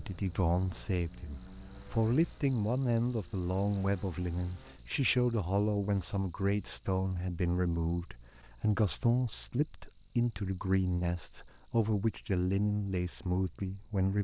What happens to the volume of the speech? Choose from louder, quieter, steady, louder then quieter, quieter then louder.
steady.